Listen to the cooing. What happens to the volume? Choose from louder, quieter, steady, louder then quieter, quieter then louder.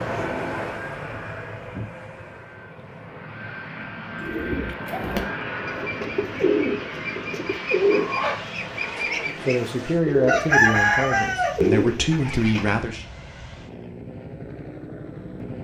louder.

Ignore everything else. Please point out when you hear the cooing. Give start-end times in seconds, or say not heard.
4.2-12.8.